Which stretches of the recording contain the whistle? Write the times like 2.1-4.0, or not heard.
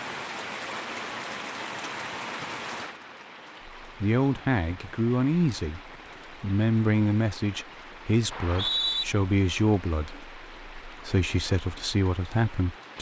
8.3-9.1.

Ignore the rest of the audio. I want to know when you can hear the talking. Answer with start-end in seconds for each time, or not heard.
3.8-12.9.